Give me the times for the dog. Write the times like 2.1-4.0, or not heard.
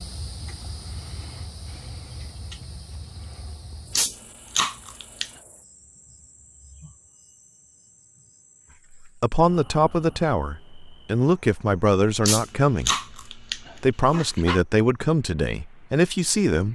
4.0-5.3, 12.2-14.6.